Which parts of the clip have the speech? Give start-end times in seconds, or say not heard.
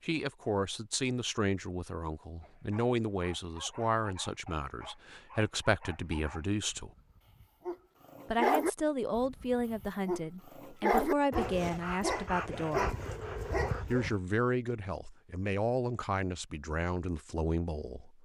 0.0-6.9, 8.2-12.9, 13.9-18.2.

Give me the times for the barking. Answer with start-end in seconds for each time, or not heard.
2.4-14.2.